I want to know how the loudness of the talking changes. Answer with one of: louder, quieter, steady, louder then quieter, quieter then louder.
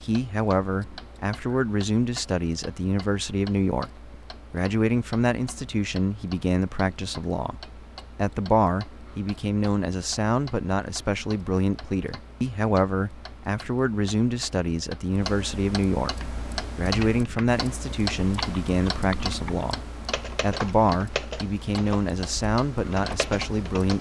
steady.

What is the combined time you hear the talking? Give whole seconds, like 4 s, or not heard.
23 s.